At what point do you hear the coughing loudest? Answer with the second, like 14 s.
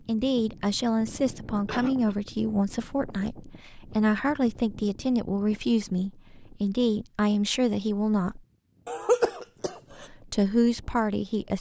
9 s.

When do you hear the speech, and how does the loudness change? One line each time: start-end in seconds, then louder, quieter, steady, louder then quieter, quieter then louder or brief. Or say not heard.
0.1-8.4 steady
10.0-11.5 brief.